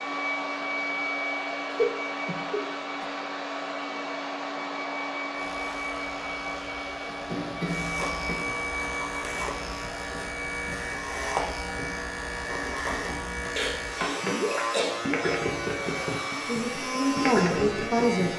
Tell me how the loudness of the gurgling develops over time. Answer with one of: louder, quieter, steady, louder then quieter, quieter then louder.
quieter then louder.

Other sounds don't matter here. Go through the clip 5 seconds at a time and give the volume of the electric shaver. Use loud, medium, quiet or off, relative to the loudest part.
off, medium, loud, loud.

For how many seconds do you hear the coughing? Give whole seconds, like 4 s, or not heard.
4 s.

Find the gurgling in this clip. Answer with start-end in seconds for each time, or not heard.
13.8-18.3.